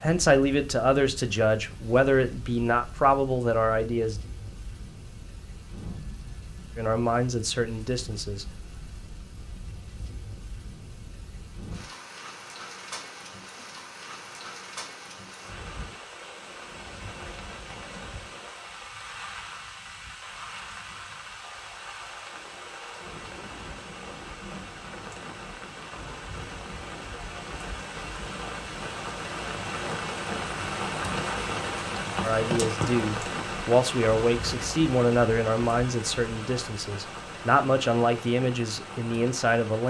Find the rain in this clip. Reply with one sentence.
The rain can be heard from 0.0 to 39.8 s.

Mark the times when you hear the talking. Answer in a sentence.
You can hear the talking from 0.0 to 4.2 s, from 6.8 to 8.4 s and from 32.2 to 39.8 s.